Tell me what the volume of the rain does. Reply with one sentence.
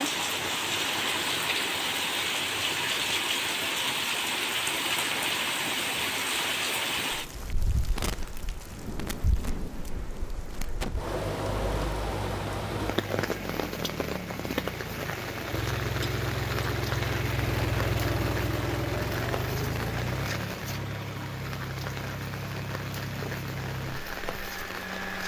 The volume of the rain goes down.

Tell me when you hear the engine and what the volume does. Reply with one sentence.
You can hear the engine from 11.1 to 25.2 s, getting louder then quieter.